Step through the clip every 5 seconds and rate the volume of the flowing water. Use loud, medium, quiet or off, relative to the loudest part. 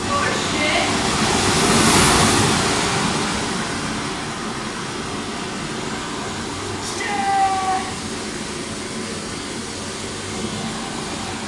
loud, medium, medium.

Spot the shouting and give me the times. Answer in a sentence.
You can hear the shouting from 0.1 to 0.9 s and from 6.8 to 8.1 s.